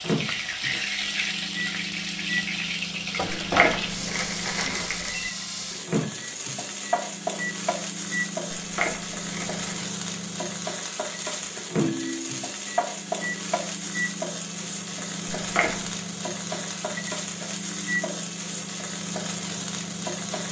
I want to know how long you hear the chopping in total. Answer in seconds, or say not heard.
not heard.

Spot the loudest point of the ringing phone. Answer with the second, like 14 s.
12 s.